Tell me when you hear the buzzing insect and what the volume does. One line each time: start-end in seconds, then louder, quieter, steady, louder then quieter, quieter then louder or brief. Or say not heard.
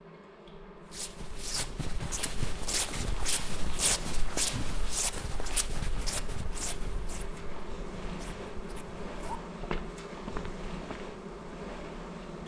0.0-12.4 louder.